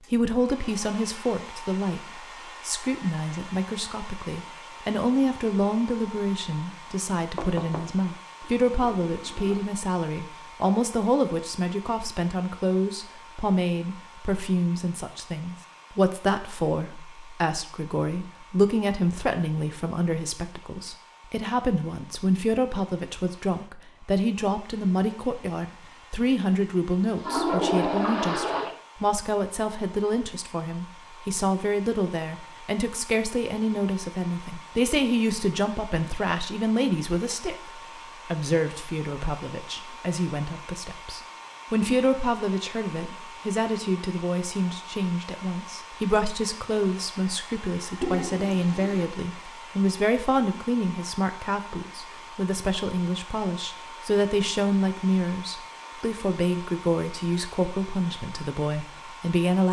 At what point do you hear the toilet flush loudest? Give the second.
28 s.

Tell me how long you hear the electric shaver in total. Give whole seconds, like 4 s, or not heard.
not heard.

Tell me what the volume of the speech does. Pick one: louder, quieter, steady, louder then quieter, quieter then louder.
steady.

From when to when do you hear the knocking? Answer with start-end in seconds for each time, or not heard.
7.3-8.0.